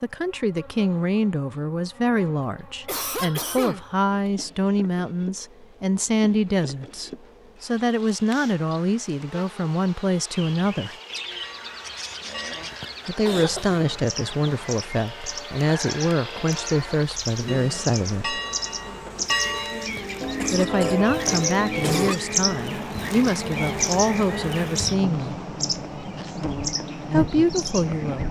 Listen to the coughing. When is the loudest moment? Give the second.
22 s.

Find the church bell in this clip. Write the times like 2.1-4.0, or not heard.
11.3-22.1.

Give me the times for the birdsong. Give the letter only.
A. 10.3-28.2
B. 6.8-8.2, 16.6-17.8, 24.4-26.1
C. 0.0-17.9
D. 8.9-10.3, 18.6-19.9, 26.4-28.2
A.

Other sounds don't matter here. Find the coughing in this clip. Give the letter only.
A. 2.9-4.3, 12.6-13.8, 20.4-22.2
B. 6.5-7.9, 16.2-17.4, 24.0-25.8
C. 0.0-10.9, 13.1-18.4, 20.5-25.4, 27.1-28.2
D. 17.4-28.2
A.